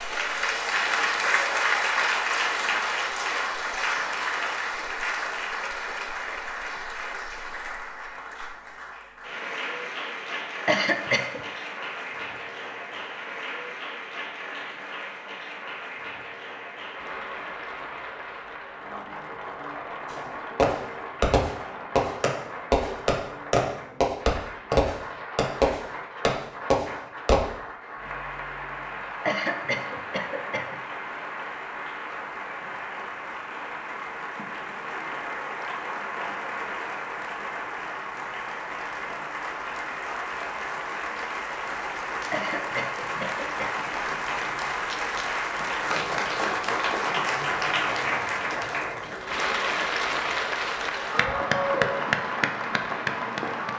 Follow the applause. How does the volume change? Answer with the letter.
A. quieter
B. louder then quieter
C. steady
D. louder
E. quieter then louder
E.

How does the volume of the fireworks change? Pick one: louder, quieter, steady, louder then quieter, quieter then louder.
steady.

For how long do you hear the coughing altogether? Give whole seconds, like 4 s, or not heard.
4 s.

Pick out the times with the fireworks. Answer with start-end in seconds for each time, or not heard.
20.1-27.4.